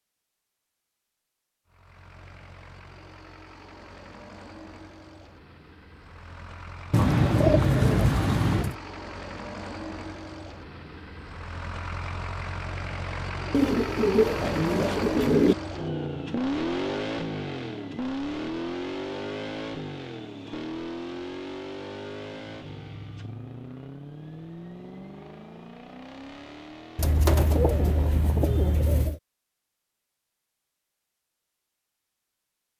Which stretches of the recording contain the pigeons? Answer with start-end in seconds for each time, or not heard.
6.9-8.8, 13.5-15.6, 26.9-29.2.